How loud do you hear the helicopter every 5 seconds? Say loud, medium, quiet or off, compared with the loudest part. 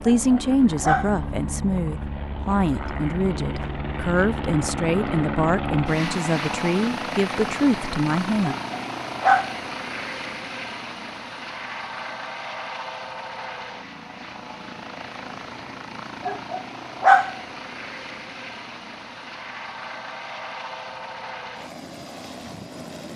loud, loud, medium, medium, medium.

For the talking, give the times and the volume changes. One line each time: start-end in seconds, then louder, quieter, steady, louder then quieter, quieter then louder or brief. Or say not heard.
0.0-8.6 steady.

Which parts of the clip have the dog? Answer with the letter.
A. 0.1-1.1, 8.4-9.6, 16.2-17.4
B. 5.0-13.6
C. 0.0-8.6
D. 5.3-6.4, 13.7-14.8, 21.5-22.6
A.